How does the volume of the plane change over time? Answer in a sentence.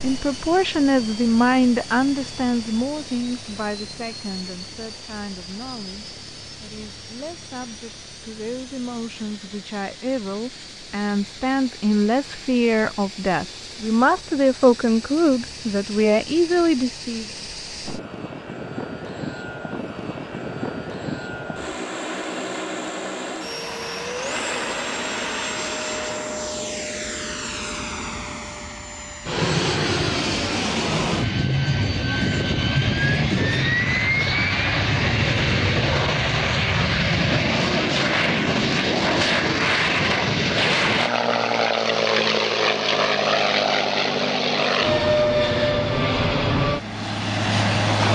The loudness of the plane goes up.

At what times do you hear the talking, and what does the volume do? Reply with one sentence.
The talking can be heard from 0.0 to 17.2 s, getting quieter then louder.